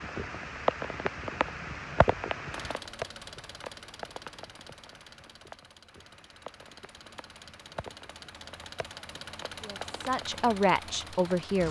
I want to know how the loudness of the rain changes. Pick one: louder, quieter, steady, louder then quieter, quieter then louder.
quieter.